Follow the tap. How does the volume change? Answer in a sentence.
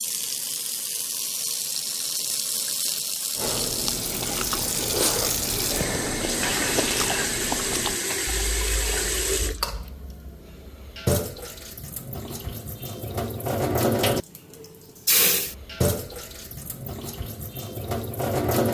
The loudness of the tap stays about the same.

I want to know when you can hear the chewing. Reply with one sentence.
You can hear the chewing from 3.4 to 9.9 s.